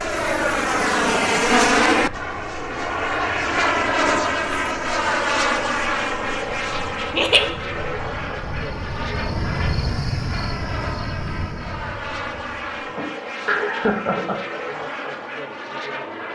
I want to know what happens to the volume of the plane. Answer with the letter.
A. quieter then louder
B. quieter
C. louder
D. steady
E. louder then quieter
B.